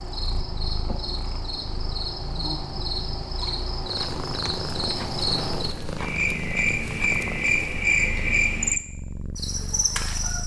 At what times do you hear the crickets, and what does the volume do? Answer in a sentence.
You can hear the crickets from 0.0 to 10.4 s, getting louder.